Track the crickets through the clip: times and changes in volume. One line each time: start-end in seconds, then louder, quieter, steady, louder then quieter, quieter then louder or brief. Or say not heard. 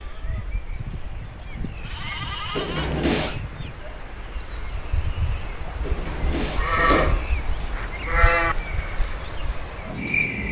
0.0-10.4 louder.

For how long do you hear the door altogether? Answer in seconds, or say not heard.
2 s.